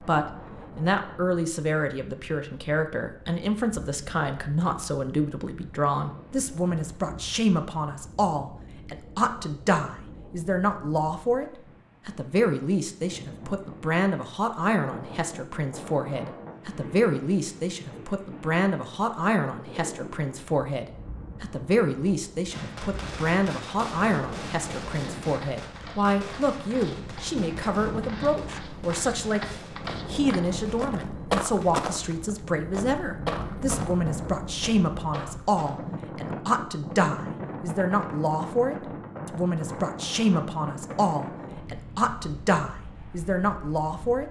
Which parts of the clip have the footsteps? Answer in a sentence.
You can hear the footsteps from 25.2 to 36.0 s.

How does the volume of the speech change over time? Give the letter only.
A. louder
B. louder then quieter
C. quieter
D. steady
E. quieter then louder
D.